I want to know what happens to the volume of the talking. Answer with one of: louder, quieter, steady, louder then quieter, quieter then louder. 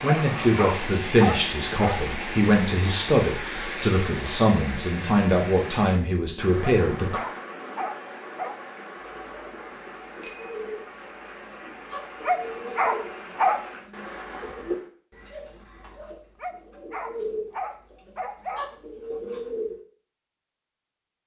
steady.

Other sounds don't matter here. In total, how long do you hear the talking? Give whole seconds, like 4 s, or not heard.
7 s.